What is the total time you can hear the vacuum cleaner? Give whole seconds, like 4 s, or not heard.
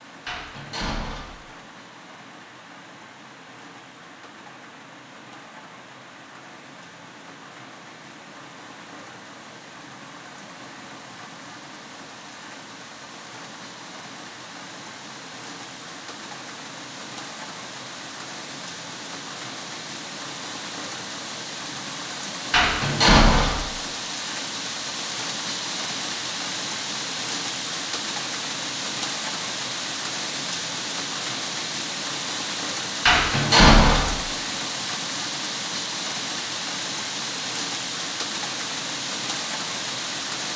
not heard.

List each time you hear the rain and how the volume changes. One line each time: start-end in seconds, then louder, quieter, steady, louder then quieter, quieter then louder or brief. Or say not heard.
0.0-40.5 louder.